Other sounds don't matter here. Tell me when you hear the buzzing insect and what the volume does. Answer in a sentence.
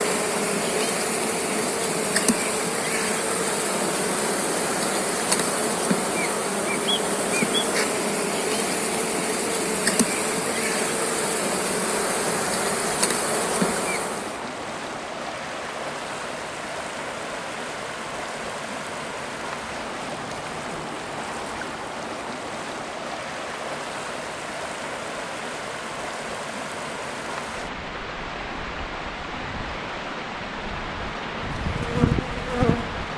You can hear the buzzing insect from 0.0 to 14.4 s, at a steady volume; and briefly from 31.3 to 33.1 s.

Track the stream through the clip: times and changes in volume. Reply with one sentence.
You can hear the stream from 0.0 to 33.1 s, at a steady volume.